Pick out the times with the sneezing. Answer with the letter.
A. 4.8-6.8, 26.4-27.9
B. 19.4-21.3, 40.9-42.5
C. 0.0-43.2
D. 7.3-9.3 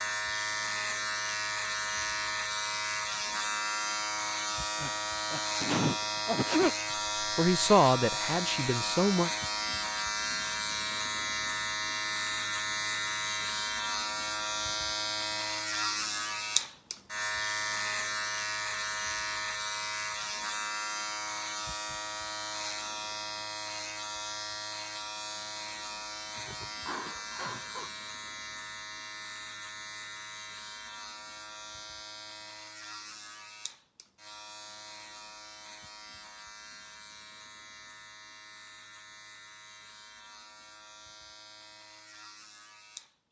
A.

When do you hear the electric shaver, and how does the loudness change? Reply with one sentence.
You can hear the electric shaver from 0.0 to 43.2 s, getting quieter.